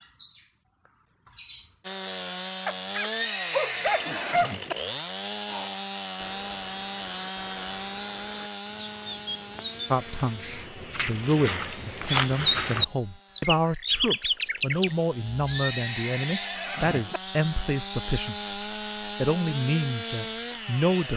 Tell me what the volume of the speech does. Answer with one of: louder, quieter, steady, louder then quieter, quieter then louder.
steady.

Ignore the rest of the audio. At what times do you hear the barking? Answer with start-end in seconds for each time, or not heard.
2.6-4.5.